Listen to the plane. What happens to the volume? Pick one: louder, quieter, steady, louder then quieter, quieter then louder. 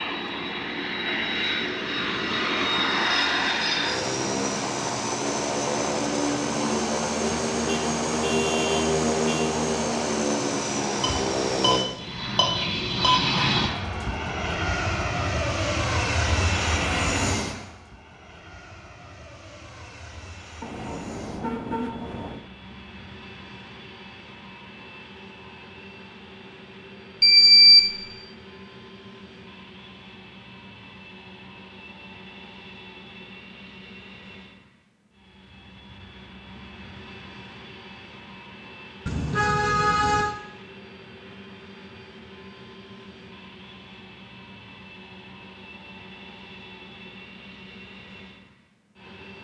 quieter.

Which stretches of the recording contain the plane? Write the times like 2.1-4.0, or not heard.
0.0-49.4.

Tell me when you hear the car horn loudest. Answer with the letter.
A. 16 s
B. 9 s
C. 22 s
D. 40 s
D.